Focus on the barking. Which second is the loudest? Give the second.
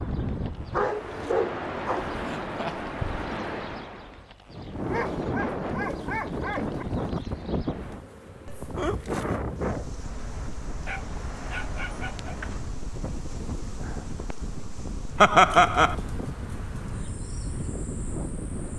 1 s.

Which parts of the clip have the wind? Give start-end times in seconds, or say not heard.
0.0-18.7.